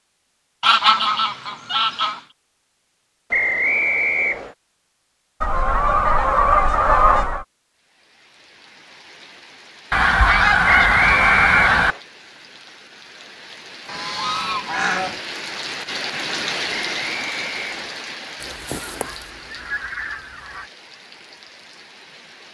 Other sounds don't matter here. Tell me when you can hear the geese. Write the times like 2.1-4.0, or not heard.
0.6-2.2, 5.4-7.5, 9.9-11.9, 13.8-15.2, 18.4-20.6.